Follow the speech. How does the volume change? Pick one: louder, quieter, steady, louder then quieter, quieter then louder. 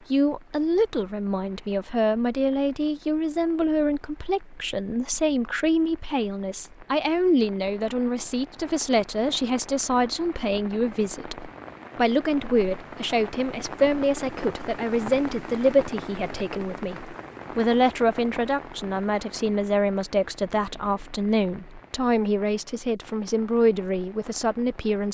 steady.